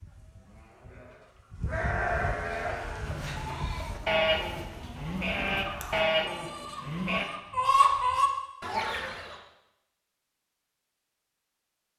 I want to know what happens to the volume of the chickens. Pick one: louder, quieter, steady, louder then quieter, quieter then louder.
louder.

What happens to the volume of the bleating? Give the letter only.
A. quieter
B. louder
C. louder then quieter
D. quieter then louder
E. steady
B.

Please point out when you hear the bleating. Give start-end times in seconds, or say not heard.
0.0-7.2.